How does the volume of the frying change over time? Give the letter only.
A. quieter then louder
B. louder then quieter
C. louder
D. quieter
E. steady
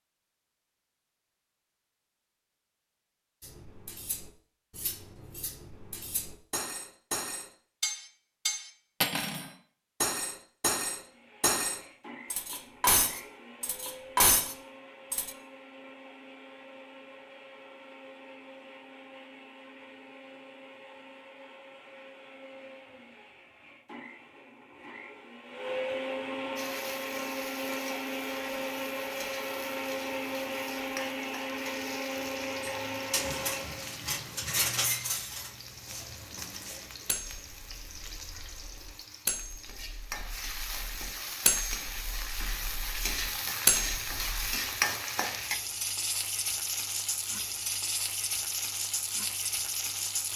C.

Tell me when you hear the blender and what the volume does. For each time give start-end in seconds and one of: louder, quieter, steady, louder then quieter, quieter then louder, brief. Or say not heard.
10.9-34.0 louder.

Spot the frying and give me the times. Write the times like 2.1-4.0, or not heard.
26.6-50.3.